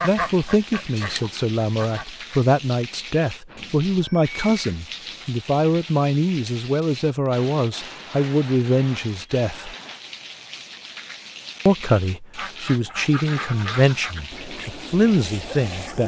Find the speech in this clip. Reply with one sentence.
You can hear the speech from 0.0 to 9.8 s and from 11.7 to 16.0 s.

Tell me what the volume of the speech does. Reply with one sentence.
The loudness of the speech stays about the same.